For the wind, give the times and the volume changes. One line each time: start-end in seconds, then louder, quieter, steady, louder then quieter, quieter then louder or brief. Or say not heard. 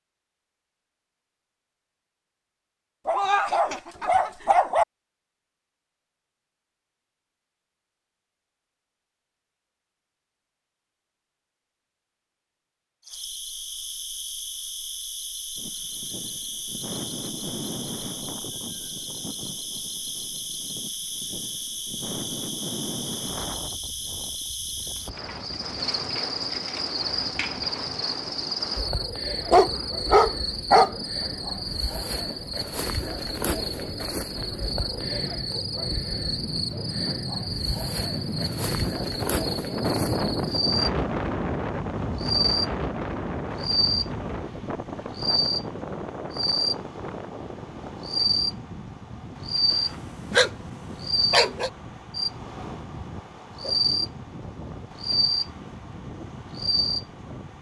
15.6-57.5 louder then quieter.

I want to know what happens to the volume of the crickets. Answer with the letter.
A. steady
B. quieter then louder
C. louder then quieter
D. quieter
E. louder
E.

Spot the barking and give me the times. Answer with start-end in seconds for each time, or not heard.
3.0-4.8, 29.5-30.9, 49.7-50.5, 51.3-51.7.